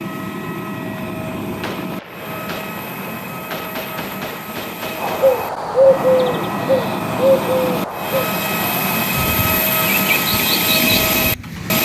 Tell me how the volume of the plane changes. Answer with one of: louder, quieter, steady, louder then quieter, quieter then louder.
louder.